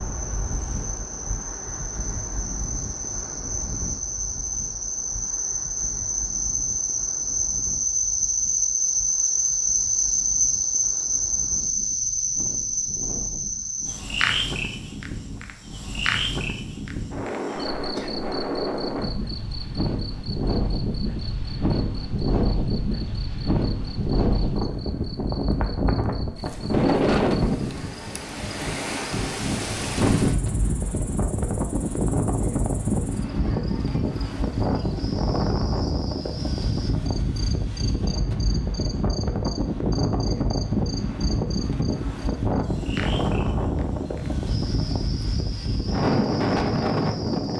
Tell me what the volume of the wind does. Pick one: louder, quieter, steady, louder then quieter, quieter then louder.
louder.